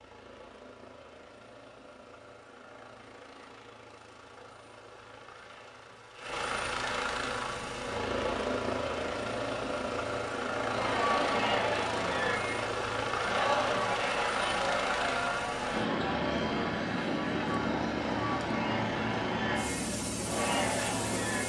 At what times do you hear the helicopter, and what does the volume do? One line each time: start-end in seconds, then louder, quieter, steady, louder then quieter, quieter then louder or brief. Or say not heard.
0.0-21.4 louder.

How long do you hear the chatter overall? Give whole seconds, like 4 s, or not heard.
11 s.